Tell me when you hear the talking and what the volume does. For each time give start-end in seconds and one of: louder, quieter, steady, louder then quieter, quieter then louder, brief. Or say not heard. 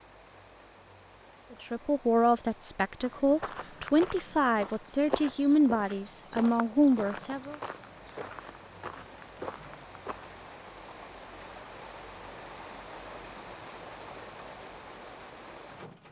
1.5-7.5 steady.